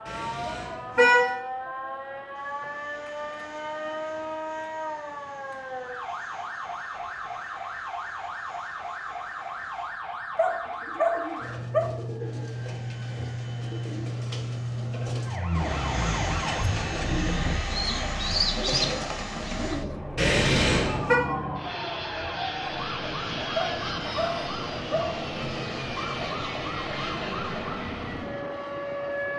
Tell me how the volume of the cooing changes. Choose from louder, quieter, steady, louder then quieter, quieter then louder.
louder.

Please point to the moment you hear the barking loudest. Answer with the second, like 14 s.
11 s.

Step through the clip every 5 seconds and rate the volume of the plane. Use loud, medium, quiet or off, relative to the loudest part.
quiet, quiet, quiet, loud, loud, loud.